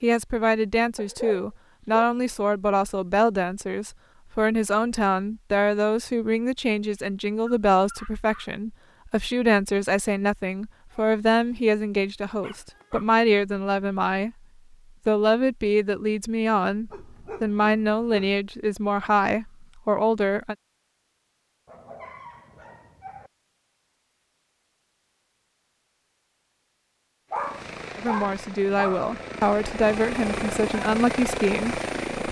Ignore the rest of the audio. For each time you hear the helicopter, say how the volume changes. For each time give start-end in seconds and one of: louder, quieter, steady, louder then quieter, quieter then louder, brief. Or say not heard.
27.3-32.2 louder.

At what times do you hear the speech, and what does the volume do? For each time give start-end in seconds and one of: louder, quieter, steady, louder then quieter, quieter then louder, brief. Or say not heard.
0.0-14.3 steady
15.1-20.6 steady
27.9-32.2 steady.